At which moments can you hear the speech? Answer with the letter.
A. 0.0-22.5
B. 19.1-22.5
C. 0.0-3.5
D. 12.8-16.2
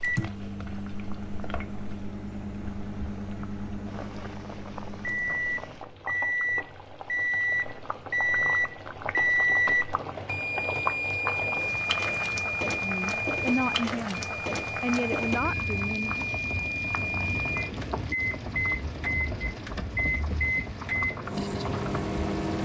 D.